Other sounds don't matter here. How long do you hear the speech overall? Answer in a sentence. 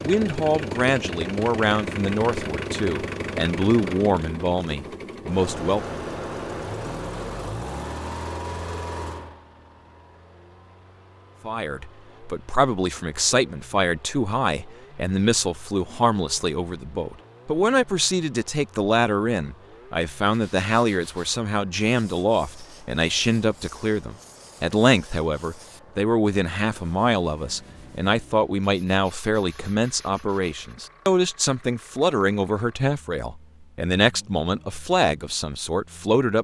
The speech can be heard for 31 seconds in total.